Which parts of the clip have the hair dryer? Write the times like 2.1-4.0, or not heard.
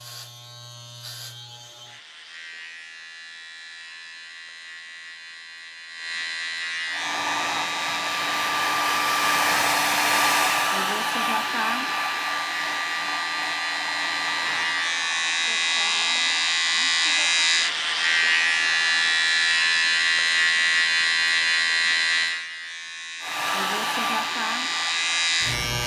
6.8-19.2, 23.2-25.8.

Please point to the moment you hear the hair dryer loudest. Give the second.
10 s.